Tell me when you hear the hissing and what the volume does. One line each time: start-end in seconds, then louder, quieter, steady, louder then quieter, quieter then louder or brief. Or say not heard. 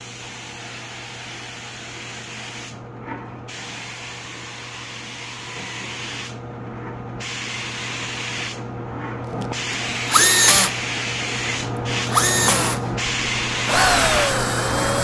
0.0-14.9 louder.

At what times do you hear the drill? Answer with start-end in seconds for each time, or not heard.
9.5-10.8, 12.1-14.9.